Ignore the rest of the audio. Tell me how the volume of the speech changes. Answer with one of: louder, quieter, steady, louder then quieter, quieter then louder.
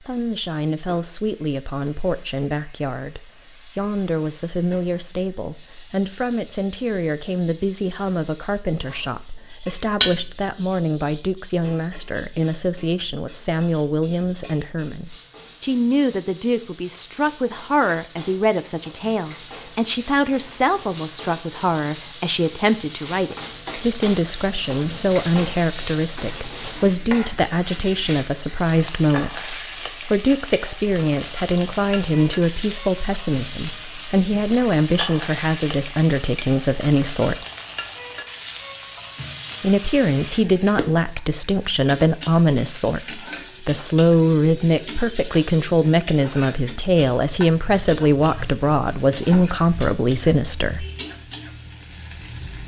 louder.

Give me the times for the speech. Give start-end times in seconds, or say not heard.
0.0-37.4, 39.6-50.9.